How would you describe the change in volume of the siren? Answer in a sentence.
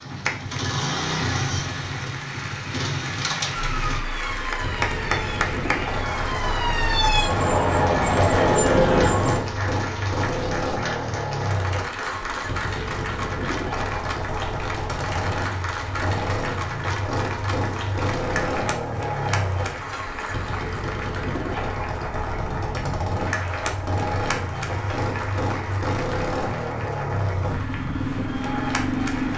The loudness of the siren goes up.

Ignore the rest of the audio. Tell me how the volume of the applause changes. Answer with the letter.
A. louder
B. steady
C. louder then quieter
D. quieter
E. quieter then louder
B.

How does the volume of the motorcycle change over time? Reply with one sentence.
The loudness of the motorcycle stays about the same.